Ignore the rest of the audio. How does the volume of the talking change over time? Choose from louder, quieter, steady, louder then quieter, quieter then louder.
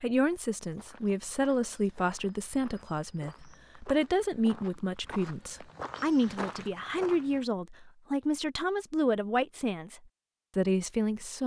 steady.